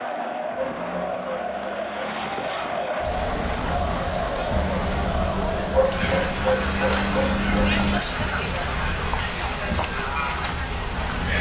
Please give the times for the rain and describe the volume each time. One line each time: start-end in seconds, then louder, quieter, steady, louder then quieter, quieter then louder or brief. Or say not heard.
3.0-11.3 steady.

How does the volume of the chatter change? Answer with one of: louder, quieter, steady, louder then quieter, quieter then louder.
steady.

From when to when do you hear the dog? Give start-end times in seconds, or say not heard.
0.6-3.0, 5.7-8.0.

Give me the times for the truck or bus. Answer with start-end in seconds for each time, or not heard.
4.5-8.0.